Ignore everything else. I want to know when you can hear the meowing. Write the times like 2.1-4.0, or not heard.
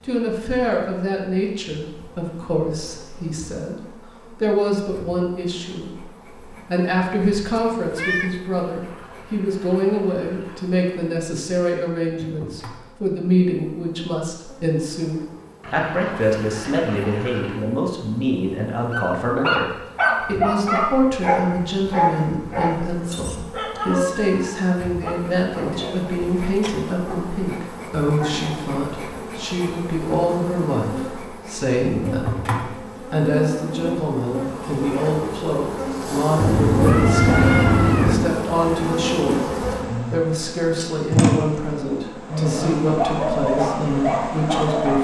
7.2-8.4, 25.7-26.9, 36.4-38.4.